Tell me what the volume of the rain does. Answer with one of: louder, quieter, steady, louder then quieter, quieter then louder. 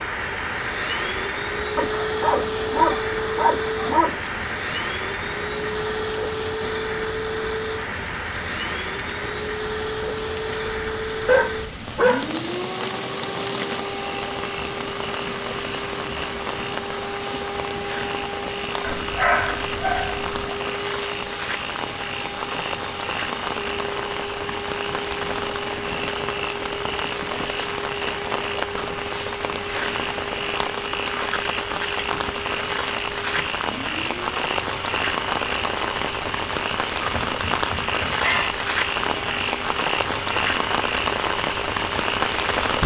louder.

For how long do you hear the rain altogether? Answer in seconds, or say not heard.
43 s.